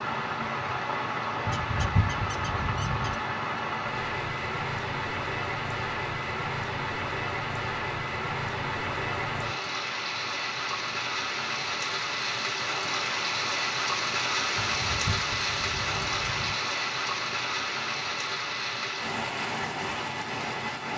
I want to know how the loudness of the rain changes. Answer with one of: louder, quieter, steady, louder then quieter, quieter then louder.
steady.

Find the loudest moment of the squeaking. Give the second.
2 s.